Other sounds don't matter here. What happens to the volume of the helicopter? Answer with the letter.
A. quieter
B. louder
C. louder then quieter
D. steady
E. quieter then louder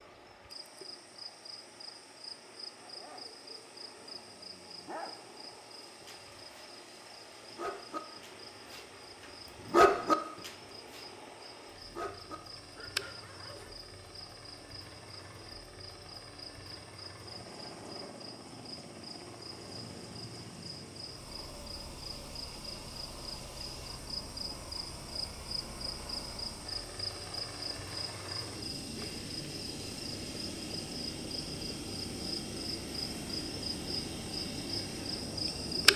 B.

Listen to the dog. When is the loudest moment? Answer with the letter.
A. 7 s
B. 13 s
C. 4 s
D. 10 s
D.